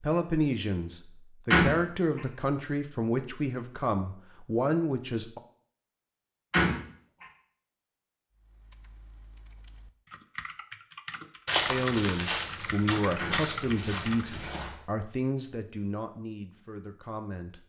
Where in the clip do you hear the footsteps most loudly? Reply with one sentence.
The volume of the footsteps peaks at 12 seconds.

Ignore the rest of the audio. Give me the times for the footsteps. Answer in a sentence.
You can hear the footsteps from 11.4 to 14.8 s.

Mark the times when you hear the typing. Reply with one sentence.
You can hear the typing from 8.3 to 14.3 s.